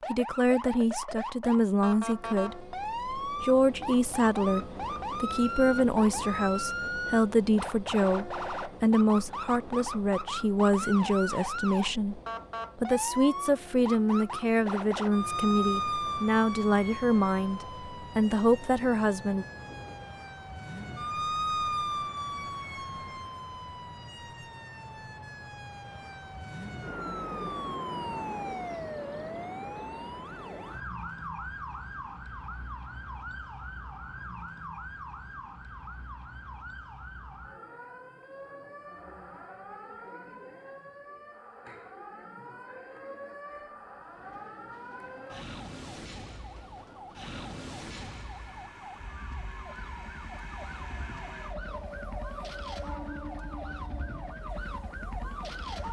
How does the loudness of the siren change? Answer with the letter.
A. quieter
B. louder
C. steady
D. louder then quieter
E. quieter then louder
A.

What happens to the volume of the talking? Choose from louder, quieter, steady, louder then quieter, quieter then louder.
steady.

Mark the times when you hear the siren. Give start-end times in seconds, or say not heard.
0.0-55.8.